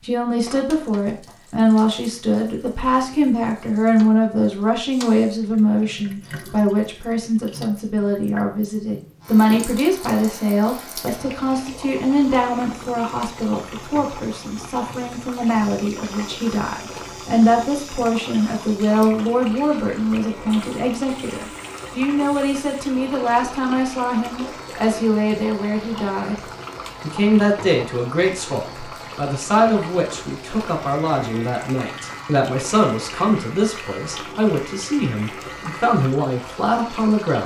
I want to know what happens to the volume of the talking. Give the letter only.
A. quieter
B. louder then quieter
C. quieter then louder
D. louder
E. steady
E.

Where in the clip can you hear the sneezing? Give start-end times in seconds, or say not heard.
not heard.